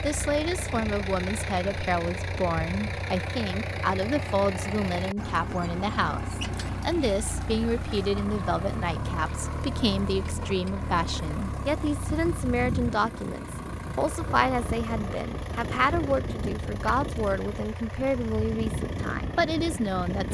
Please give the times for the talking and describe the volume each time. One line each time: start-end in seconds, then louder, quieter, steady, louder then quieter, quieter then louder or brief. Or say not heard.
0.0-20.2 steady.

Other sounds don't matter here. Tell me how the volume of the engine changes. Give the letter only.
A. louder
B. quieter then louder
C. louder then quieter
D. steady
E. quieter
D.